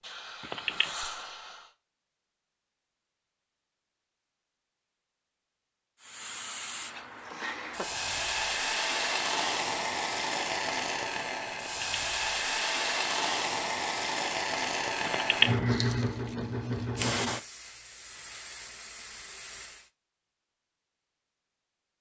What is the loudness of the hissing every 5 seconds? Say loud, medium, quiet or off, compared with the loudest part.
medium, loud, loud, loud, off.